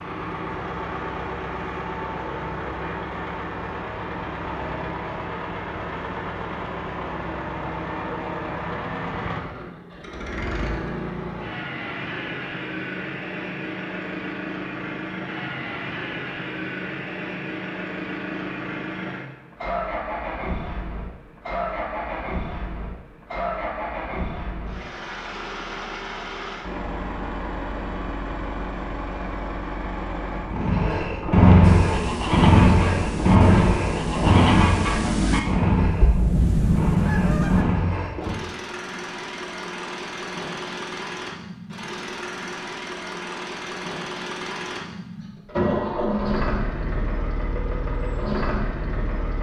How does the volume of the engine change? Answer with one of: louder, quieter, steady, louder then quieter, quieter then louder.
louder then quieter.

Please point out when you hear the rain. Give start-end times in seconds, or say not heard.
not heard.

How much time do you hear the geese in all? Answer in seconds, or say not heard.
6 s.